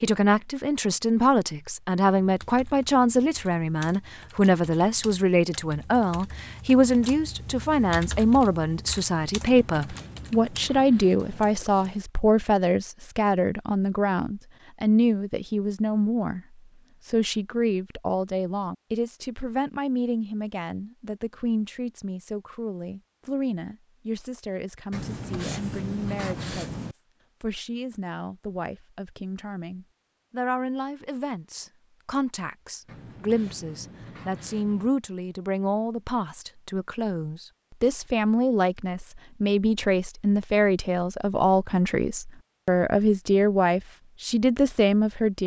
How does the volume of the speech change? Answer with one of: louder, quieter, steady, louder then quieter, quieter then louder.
quieter then louder.